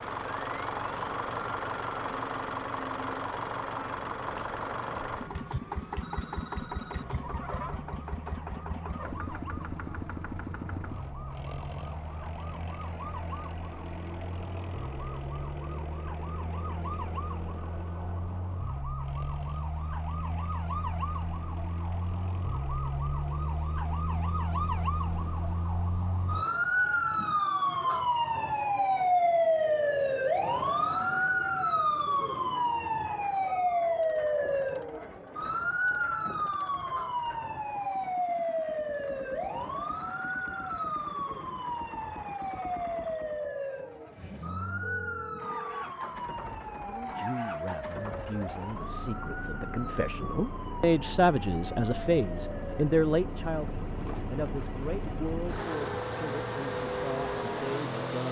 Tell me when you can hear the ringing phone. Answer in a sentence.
You can hear the ringing phone from 5.8 to 7.0 s and from 44.8 to 45.9 s.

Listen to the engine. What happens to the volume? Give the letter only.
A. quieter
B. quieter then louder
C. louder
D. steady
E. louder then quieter
B.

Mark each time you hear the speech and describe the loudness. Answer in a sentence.
You can hear the speech from 46.8 to 58.2 s, getting louder then quieter.